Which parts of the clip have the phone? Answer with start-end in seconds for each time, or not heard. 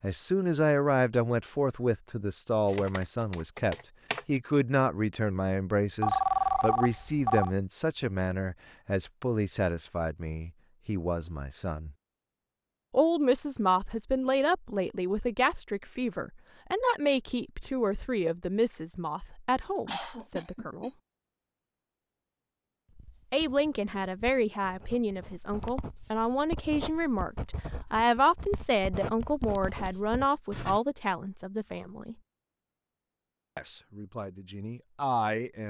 6.0-7.5.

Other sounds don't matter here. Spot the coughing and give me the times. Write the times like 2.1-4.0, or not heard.
19.9-20.9.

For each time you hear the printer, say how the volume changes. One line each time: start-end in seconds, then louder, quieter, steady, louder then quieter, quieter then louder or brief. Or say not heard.
not heard.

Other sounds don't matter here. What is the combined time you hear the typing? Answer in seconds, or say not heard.
2 s.